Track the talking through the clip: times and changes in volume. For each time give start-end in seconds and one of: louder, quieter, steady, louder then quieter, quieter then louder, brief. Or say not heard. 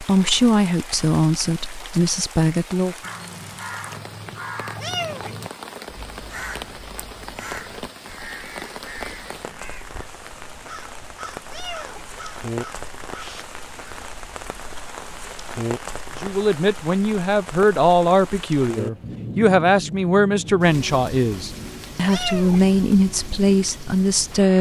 0.0-3.0 brief
16.2-24.5 steady.